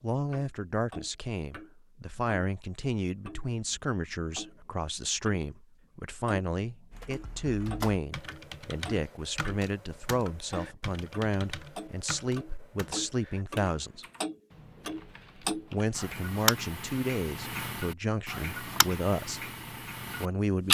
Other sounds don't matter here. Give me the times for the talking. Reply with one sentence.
The talking can be heard from 0.0 to 14.1 s, from 15.5 to 19.4 s and from 20.1 to 20.6 s.